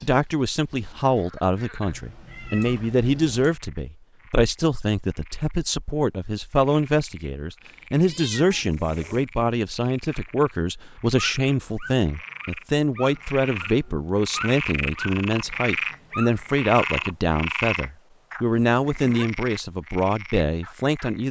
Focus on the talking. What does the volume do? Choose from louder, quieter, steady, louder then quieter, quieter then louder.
steady.